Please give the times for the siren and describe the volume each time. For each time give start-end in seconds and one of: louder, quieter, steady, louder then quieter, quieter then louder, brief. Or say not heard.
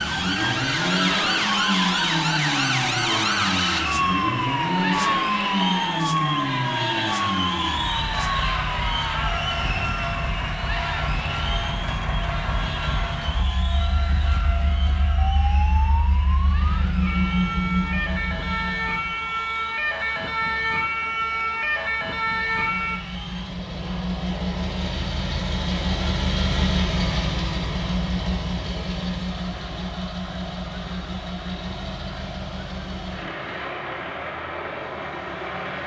0.0-23.0 quieter then louder.